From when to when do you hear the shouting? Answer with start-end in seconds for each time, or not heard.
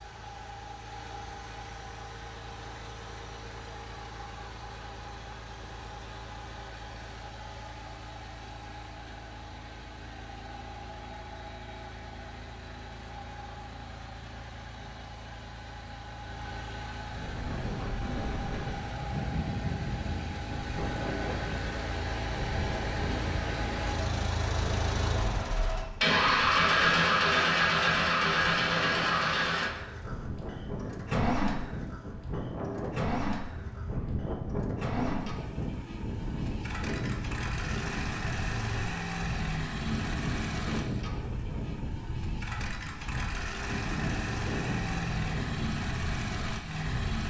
not heard.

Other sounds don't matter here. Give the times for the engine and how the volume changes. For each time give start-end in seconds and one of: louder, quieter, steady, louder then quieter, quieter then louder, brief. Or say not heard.
0.0-47.2 louder then quieter.